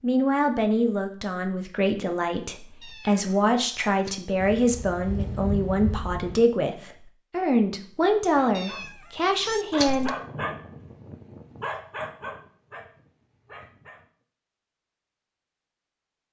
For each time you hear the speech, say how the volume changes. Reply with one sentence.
The speech can be heard from 0.0 to 10.1 s, at a steady volume.